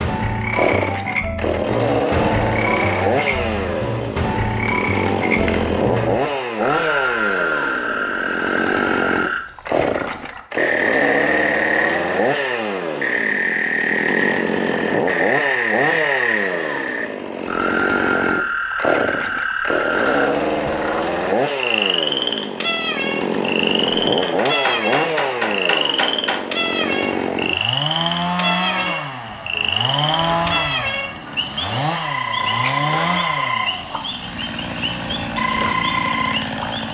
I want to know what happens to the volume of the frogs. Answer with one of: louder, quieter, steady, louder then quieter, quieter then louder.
steady.